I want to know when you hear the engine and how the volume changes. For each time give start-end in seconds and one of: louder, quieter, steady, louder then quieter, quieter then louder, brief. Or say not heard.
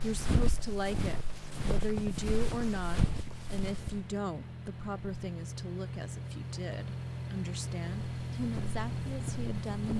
0.0-9.9 louder.